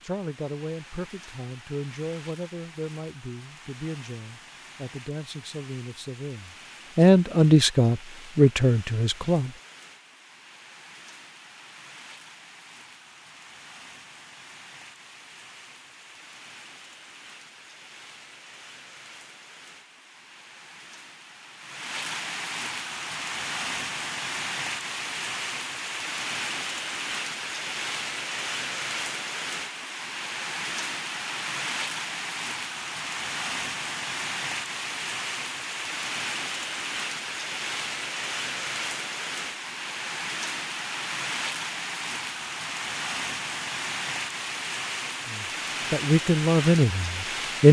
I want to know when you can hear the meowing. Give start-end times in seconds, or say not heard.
not heard.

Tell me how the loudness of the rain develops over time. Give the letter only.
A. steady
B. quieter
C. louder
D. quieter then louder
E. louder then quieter
C.